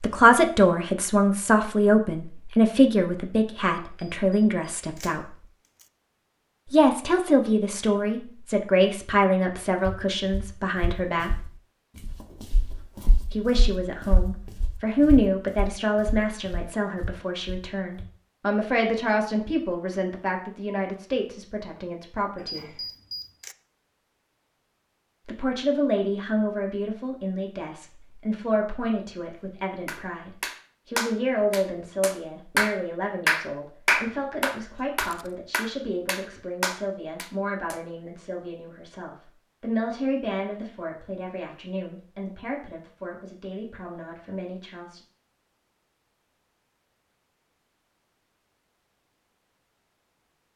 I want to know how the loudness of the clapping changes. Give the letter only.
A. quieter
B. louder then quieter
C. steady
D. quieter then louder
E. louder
B.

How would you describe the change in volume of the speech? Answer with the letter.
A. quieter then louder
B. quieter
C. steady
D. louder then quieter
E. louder
B.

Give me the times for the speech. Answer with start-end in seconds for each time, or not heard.
0.0-5.3, 6.7-11.4, 13.3-22.7, 25.2-45.0.